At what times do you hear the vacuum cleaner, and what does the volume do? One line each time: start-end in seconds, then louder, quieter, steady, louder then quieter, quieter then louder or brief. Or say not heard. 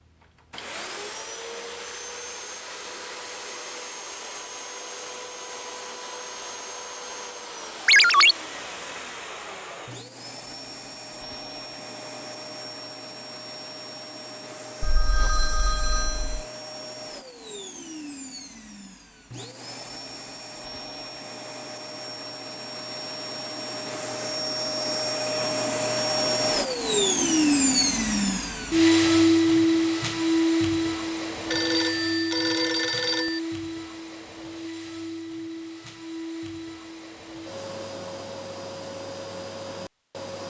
0.0-40.4 louder then quieter.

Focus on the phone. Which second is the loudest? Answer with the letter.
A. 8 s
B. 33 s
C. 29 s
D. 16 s
A.